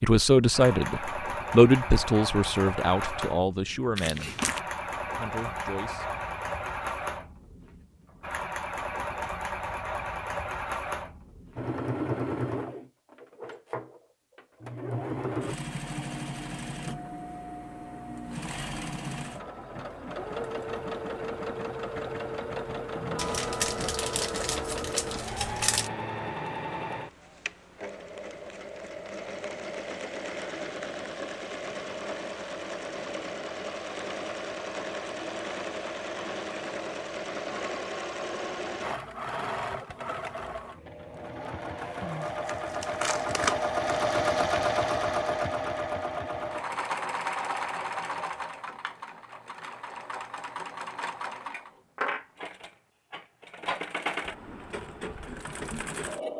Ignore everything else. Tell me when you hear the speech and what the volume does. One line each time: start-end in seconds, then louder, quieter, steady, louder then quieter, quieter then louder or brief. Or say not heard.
0.0-4.3 louder then quieter
5.2-6.0 brief.